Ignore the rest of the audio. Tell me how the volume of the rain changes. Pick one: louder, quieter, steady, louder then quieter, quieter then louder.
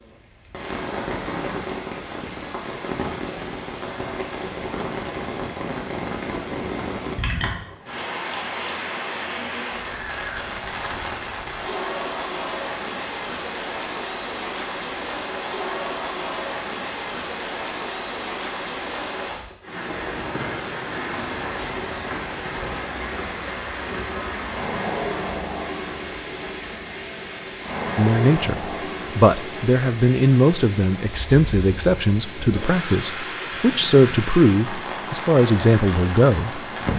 steady.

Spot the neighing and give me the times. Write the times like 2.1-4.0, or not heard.
not heard.